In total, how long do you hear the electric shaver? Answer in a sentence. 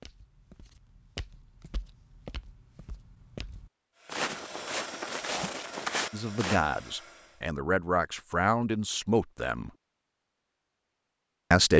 You can't hear the electric shaver here.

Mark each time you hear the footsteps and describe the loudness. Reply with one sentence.
You can hear the footsteps from 0.0 to 6.6 s, getting louder.